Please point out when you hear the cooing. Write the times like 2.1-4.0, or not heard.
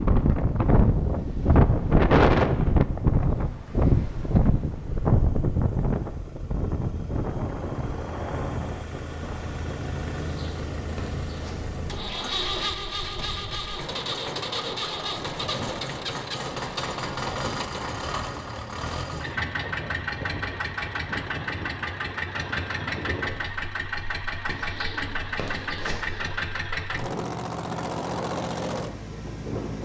10.3-11.8, 24.4-26.3.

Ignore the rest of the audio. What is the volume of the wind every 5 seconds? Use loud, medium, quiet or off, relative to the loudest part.
loud, medium, quiet, quiet, quiet, quiet.